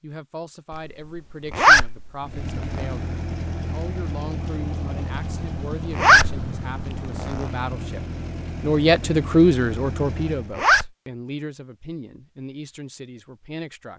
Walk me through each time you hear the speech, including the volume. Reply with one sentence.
The speech can be heard from 0.0 to 13.9 s, getting louder then quieter.